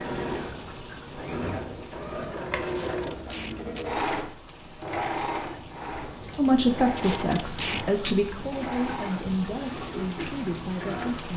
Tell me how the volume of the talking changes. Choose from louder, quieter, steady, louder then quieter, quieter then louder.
quieter.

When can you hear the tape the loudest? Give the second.
8 s.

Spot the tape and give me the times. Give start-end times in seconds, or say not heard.
2.6-3.9, 6.9-8.2.